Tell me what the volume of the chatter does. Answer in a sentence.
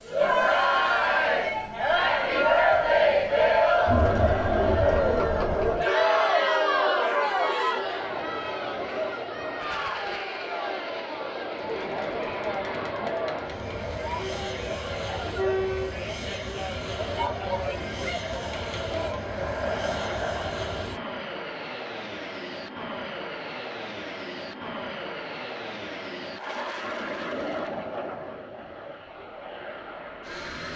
The loudness of the chatter goes down.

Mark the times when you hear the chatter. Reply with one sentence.
You can hear the chatter from 0.1 to 20.9 s.